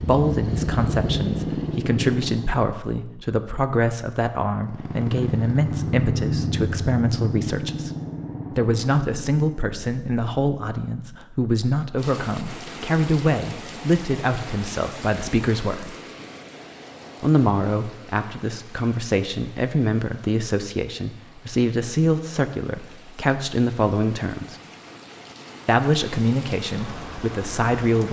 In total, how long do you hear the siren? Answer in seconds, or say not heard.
not heard.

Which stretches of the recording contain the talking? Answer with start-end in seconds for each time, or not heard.
0.0-7.9, 8.5-15.9, 17.2-24.6, 25.6-28.0.